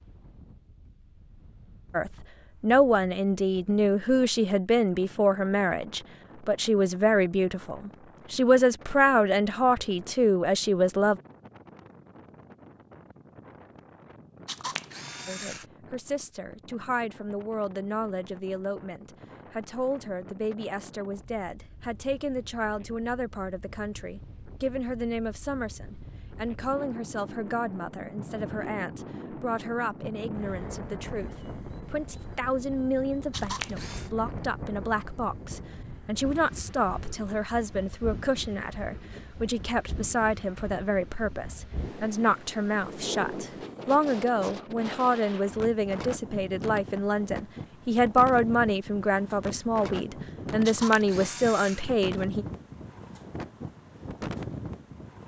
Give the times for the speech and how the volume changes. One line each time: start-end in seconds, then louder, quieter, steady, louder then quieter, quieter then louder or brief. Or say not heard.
1.9-11.2 steady
15.2-52.5 louder.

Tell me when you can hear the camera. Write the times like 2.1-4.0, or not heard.
14.4-15.7, 33.3-34.1, 50.6-51.9.